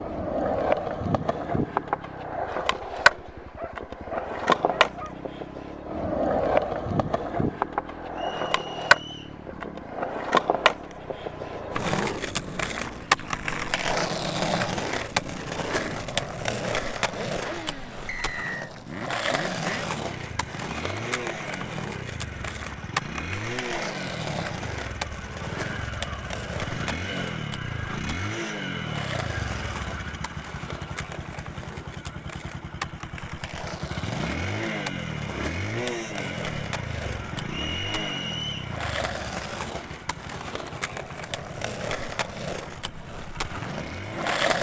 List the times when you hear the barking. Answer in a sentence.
You can hear the barking from 3.5 to 5.2 s.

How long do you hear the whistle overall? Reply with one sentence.
You can hear the whistle for 3 seconds altogether.